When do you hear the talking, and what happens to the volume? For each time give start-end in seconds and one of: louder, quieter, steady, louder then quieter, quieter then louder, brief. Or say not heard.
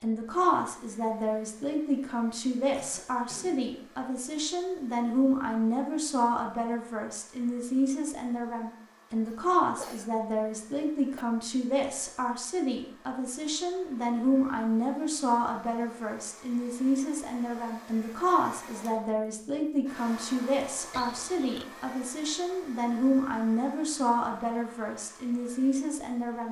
0.0-26.4 steady.